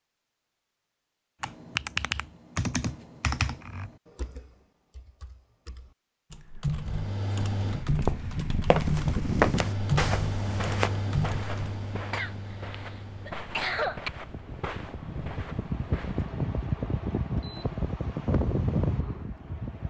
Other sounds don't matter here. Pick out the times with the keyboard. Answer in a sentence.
The keyboard can be heard from 1.4 to 11.7 s.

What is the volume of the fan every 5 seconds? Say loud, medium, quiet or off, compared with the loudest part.
off, loud, medium, loud.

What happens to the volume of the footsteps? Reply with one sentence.
The loudness of the footsteps goes down.